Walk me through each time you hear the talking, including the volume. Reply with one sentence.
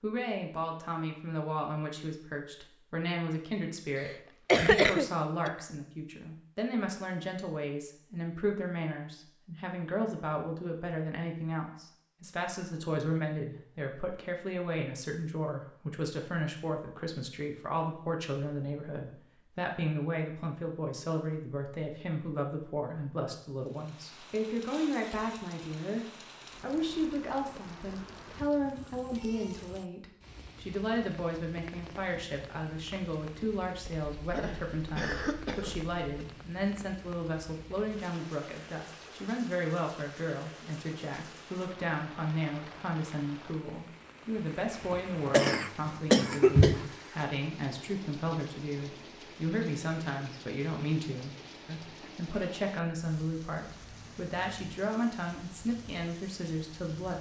The talking can be heard from 0.0 to 57.1 s, at a steady volume.